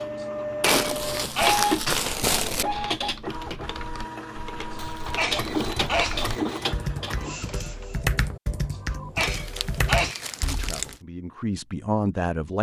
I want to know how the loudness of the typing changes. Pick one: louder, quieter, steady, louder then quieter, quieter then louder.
louder.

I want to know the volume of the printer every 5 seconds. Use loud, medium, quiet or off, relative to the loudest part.
loud, loud, off.